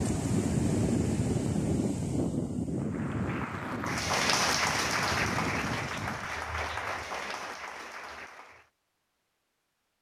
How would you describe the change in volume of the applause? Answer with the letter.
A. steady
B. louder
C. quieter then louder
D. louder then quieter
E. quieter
D.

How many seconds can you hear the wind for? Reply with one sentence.
You can hear the wind for 6 seconds altogether.